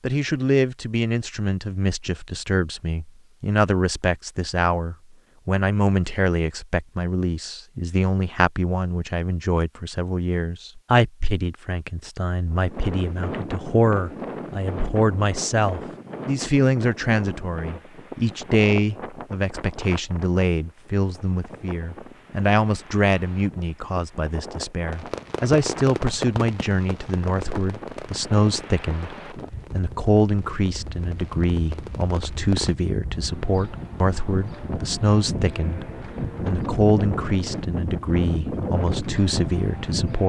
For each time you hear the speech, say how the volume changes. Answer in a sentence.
The speech can be heard from 0.0 to 40.2 s, at a steady volume.